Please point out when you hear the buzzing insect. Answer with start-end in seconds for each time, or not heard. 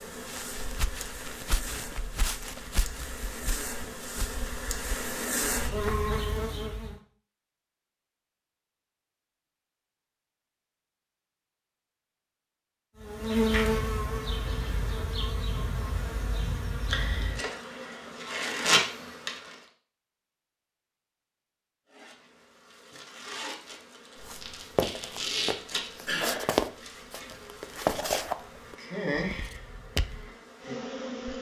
0.0-7.0, 13.0-19.6, 21.9-31.3.